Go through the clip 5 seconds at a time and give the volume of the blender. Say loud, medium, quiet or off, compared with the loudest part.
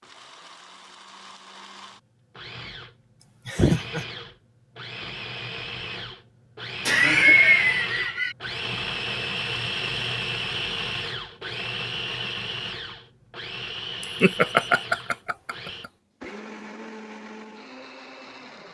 medium, loud, loud, medium.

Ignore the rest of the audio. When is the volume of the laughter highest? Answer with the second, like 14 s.
7 s.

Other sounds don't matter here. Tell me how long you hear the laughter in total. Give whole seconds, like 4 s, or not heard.
4 s.